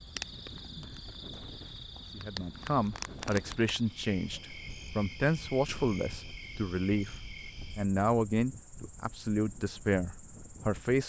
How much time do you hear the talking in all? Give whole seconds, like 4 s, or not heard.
8 s.